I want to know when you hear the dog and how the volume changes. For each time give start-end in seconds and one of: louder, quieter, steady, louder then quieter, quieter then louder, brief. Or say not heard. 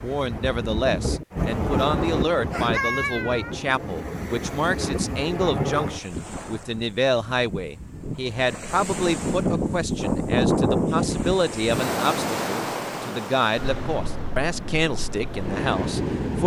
not heard.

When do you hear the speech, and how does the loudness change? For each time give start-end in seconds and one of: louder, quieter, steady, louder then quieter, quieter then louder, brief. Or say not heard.
0.0-16.4 steady.